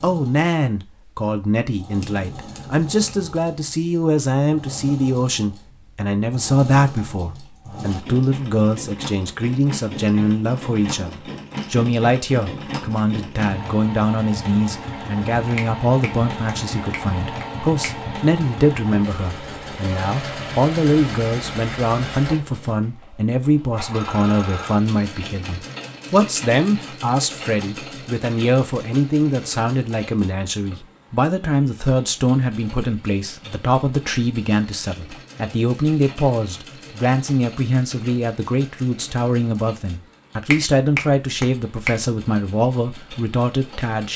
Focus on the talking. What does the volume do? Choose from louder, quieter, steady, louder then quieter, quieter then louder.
steady.